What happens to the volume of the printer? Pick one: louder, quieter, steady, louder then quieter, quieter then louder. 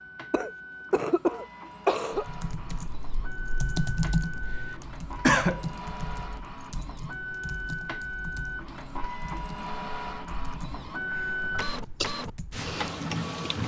louder.